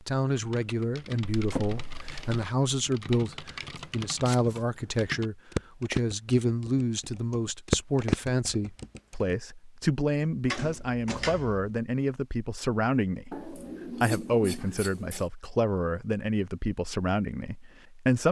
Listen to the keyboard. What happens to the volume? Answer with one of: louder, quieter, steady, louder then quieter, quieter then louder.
louder.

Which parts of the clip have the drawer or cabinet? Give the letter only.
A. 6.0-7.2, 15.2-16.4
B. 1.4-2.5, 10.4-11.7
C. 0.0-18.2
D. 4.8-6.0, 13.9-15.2
B.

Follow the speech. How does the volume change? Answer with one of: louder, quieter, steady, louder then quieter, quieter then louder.
steady.